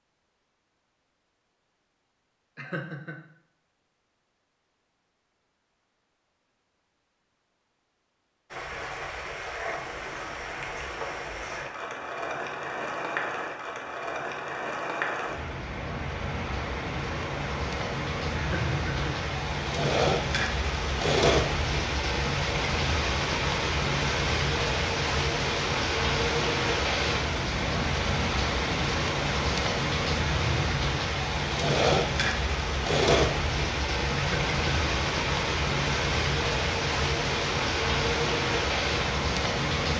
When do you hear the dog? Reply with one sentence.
The dog can't be heard in this clip.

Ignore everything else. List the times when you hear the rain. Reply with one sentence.
You can hear the rain from 8.5 to 39.9 s.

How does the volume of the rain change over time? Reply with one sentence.
The loudness of the rain goes up.